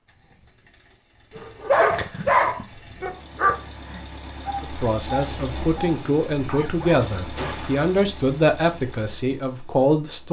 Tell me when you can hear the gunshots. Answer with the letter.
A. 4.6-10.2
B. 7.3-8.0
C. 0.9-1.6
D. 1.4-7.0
B.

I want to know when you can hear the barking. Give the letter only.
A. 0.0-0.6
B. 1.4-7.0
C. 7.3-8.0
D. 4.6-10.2
B.